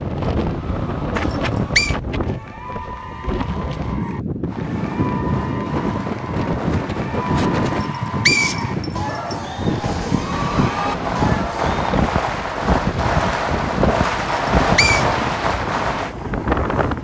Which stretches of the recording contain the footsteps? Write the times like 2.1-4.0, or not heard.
not heard.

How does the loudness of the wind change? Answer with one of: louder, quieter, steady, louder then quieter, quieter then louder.
steady.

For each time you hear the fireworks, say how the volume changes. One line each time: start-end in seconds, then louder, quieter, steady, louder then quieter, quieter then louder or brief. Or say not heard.
4.5-16.1 louder.